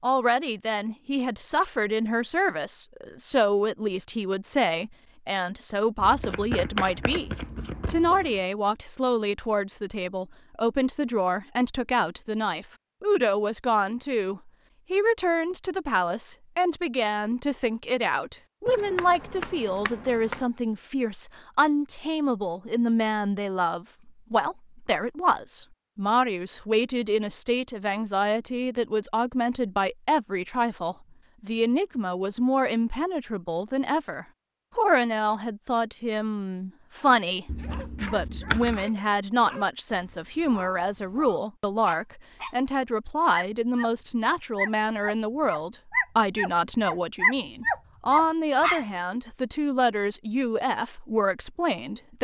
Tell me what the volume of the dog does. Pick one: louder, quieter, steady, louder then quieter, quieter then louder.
louder.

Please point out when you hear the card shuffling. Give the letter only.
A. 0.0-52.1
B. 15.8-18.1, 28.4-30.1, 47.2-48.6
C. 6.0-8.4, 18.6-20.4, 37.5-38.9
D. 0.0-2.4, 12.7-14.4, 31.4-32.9
C.